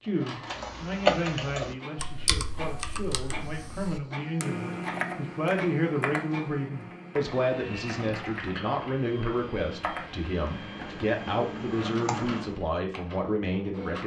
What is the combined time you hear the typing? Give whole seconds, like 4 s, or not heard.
12 s.